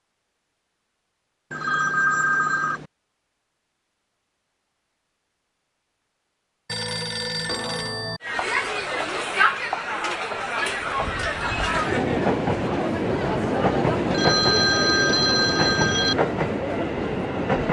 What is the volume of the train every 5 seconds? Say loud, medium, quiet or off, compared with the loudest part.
off, off, loud, loud.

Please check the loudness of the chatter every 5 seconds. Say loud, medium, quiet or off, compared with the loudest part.
off, loud, loud, medium.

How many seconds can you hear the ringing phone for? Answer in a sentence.
You can hear the ringing phone for 5 seconds altogether.